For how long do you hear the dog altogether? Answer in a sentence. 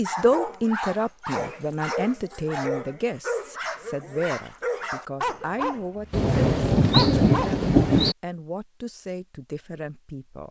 You can hear the dog for 8 seconds altogether.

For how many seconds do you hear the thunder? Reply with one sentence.
You can hear the thunder for 2 seconds altogether.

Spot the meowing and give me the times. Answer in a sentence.
The meowing can't be heard in this clip.